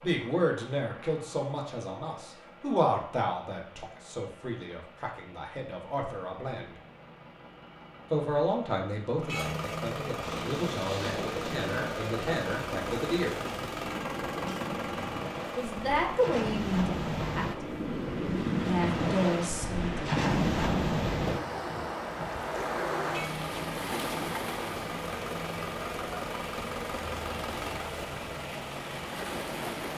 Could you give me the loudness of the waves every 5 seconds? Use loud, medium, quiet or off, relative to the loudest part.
off, off, medium, loud, loud, medium.